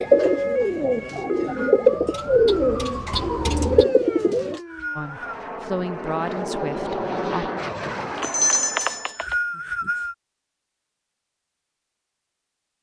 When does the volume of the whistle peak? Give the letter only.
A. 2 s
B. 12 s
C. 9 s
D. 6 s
C.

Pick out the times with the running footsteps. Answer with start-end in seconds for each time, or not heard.
not heard.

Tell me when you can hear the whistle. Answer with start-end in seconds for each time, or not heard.
1.1-1.8, 4.3-5.4, 8.8-10.2.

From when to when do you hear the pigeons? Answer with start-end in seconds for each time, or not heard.
0.0-4.6.